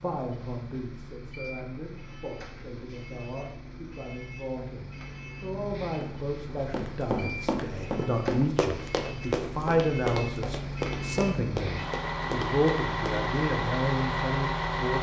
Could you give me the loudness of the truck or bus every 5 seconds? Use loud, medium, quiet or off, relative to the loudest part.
quiet, medium, loud.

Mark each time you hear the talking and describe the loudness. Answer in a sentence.
You can hear the talking from 0.0 to 14.9 s, getting louder.